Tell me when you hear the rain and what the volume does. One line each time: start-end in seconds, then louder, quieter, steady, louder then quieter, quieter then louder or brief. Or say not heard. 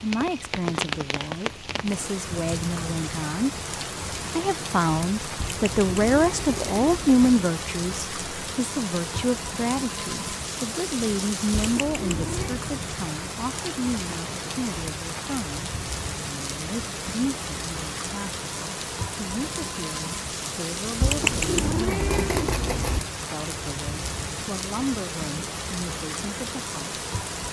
0.0-27.4 steady.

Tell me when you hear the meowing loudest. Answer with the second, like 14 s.
21 s.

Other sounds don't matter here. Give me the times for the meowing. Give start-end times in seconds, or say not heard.
5.3-7.3, 11.5-12.7, 21.0-23.0.